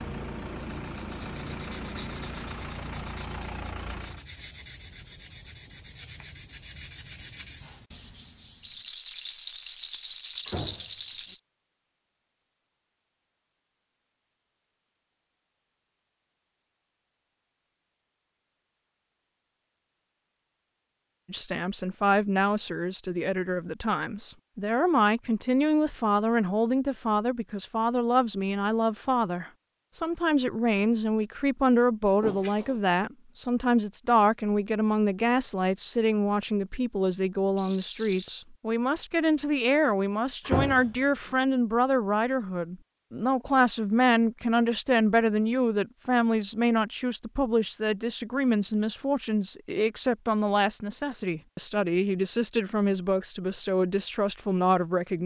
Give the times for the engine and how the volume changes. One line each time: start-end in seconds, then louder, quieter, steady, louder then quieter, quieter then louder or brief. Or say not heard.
0.0-4.2 steady.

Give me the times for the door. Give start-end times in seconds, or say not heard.
10.4-11.3, 32.0-32.8, 40.5-41.4.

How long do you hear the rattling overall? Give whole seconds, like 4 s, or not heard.
4 s.